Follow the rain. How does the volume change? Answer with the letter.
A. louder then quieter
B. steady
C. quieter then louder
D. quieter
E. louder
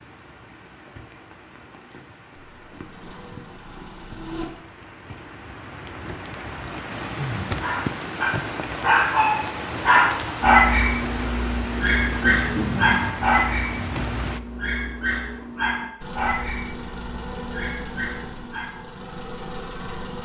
E.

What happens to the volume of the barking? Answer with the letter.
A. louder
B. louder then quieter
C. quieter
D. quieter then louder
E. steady
C.